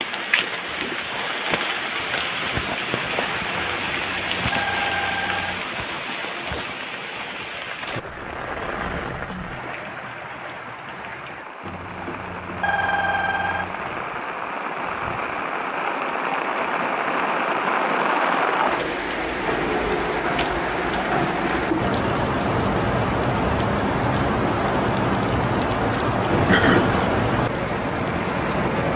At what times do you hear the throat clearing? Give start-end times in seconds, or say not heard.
8.8-9.7, 26.4-27.1.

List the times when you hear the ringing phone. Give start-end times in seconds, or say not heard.
3.5-5.7, 11.6-13.8, 26.3-27.1.